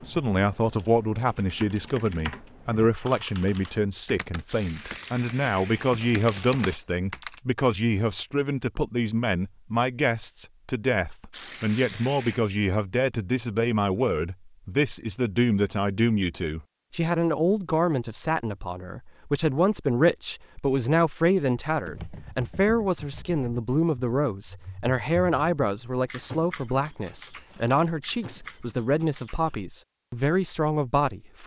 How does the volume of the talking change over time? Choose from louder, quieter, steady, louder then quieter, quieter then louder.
steady.